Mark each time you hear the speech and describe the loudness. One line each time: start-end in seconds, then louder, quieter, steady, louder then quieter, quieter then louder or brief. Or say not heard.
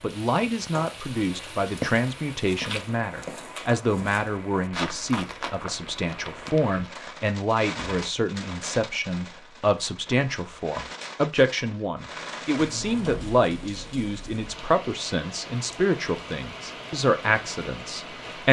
0.0-18.4 steady.